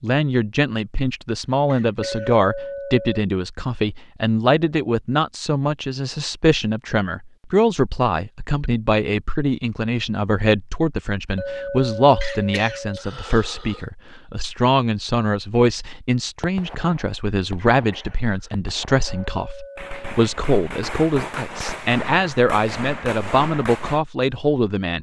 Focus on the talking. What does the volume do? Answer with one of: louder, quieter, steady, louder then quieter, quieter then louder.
steady.